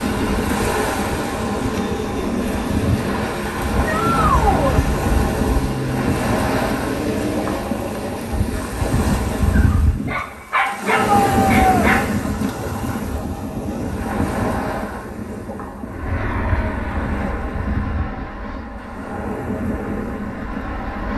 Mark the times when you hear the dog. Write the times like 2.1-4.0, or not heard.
9.5-12.3.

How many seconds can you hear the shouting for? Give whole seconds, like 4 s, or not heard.
2 s.